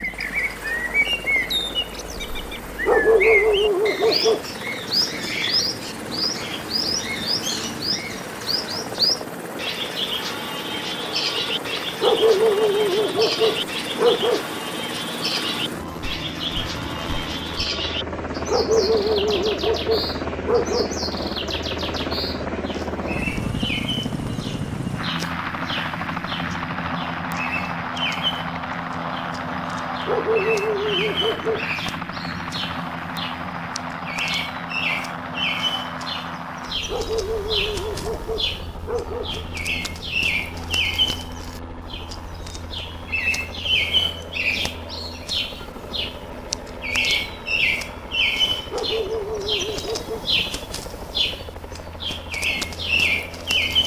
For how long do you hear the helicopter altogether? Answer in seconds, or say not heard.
54 s.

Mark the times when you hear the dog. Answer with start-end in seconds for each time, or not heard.
2.9-4.4, 12.0-14.4, 18.4-20.9, 30.1-31.7, 36.9-39.5, 48.7-50.2.